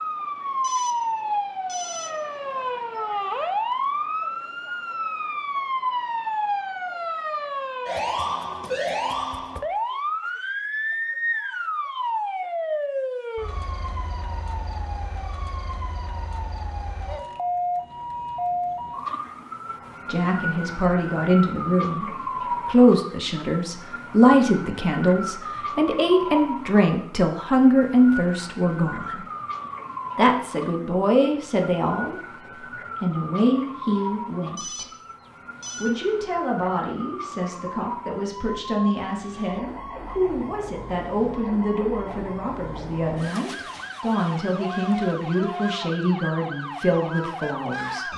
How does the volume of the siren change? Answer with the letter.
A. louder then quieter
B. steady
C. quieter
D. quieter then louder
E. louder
C.